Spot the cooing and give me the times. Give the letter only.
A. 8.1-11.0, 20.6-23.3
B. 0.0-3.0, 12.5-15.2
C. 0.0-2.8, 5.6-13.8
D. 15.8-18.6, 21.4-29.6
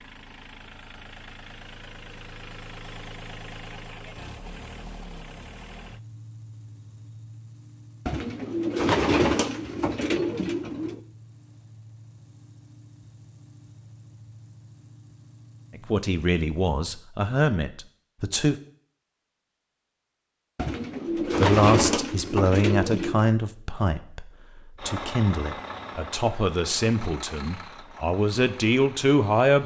A.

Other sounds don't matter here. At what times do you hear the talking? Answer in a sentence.
The talking can be heard from 15.8 to 18.6 s and from 21.4 to 29.6 s.